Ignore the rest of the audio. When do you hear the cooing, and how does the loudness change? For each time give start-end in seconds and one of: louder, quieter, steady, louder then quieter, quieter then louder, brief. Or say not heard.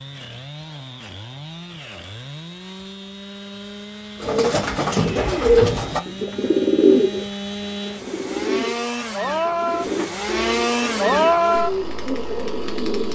4.2-13.1 quieter.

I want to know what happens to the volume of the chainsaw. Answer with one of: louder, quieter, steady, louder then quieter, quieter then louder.
louder.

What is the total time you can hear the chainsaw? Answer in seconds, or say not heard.
13 s.